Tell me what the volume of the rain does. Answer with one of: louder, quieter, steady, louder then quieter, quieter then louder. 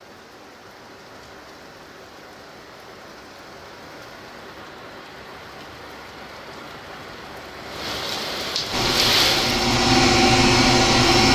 louder.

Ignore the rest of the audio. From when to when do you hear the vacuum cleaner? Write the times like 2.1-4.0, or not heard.
8.7-11.3.